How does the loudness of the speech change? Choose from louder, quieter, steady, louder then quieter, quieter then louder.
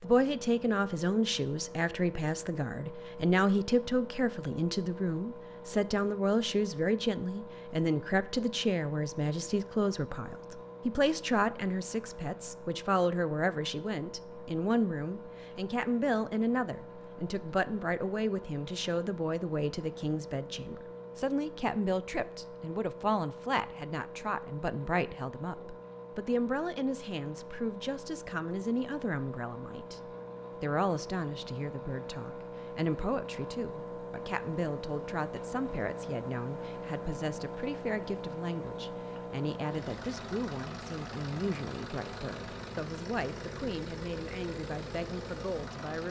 quieter.